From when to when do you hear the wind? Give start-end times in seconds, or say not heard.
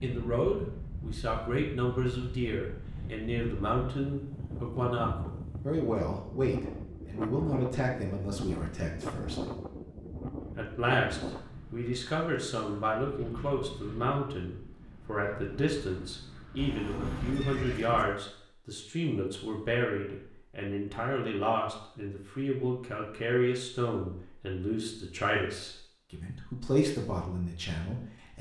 0.0-17.6.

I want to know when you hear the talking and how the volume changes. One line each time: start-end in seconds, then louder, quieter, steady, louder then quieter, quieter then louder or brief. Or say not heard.
0.0-9.4 steady
10.6-28.3 steady.